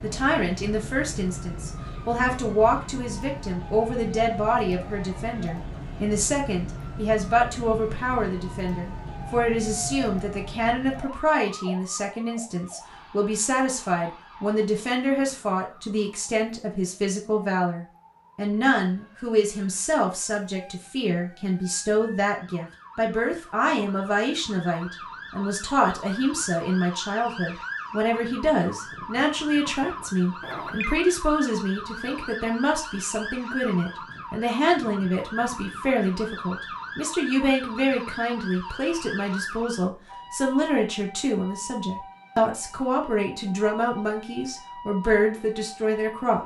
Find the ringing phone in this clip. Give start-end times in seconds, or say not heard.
30.4-31.1.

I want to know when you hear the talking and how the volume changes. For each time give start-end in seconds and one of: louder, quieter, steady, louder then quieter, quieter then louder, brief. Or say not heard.
0.0-46.4 steady.